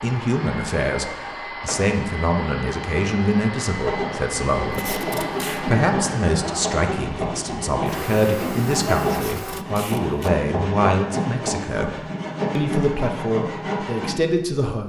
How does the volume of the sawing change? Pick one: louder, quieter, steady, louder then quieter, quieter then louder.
steady.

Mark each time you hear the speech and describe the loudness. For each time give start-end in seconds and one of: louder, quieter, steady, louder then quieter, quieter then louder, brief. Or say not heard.
0.0-14.8 steady.